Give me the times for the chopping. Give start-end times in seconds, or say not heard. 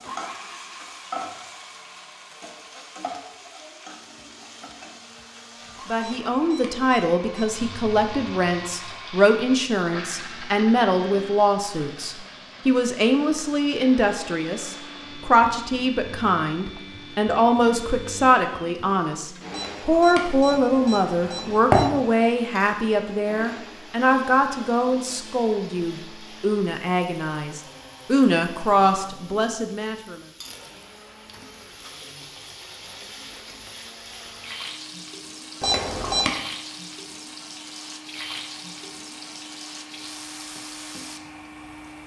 not heard.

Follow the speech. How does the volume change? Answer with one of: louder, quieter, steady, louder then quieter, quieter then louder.
steady.